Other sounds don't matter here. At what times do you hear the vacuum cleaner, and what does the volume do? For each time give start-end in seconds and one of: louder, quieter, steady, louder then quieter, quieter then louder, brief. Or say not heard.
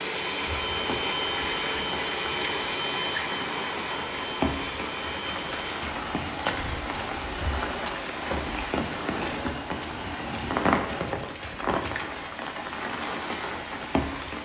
0.0-11.2 quieter.